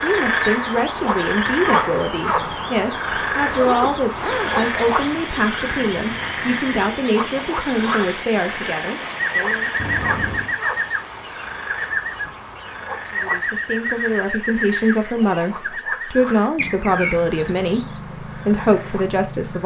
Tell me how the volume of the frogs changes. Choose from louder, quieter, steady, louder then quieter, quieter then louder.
quieter.